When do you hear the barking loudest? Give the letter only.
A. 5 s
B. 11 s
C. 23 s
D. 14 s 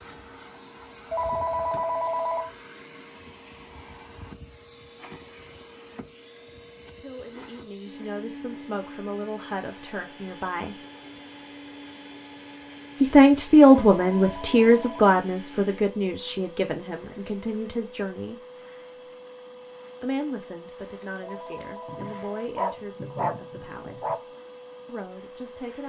C.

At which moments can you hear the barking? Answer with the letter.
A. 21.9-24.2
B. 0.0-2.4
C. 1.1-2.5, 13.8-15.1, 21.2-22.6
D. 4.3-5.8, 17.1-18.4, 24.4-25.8
A.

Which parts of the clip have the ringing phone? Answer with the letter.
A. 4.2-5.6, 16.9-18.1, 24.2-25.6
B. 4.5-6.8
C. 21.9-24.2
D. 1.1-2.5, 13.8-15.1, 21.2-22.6
D.